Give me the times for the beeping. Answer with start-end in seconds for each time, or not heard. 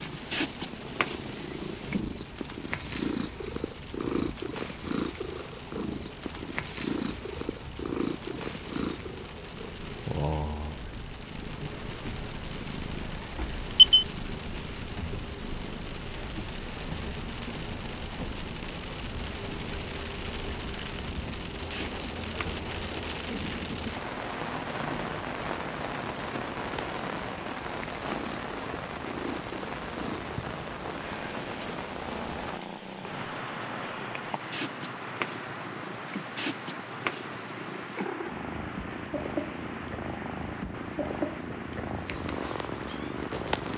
13.3-14.1.